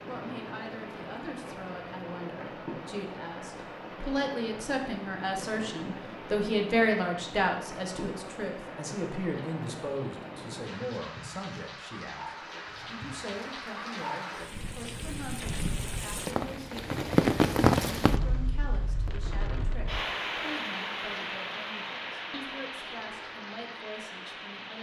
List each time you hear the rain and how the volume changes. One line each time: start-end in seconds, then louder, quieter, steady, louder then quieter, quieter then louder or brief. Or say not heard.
0.0-24.7 louder then quieter.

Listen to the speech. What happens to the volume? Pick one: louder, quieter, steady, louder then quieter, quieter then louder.
louder then quieter.